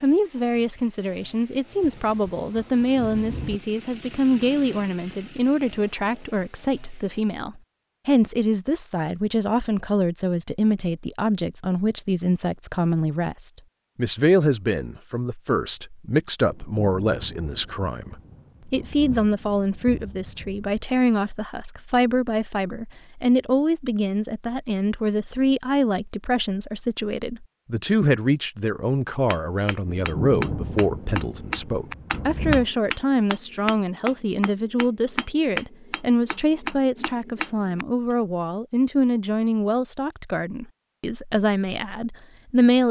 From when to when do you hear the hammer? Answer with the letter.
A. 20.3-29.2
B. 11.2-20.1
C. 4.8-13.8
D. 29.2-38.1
D.